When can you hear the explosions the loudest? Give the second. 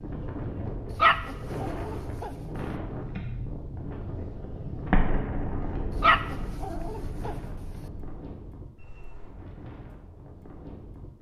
5 s.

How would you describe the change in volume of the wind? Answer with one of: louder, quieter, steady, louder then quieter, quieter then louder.
quieter.